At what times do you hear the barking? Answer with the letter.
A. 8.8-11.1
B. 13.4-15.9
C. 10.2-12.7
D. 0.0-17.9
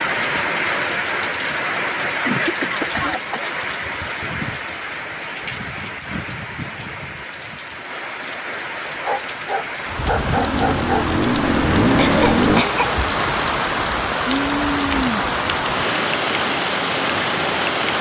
A.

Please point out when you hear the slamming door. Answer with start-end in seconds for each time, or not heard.
not heard.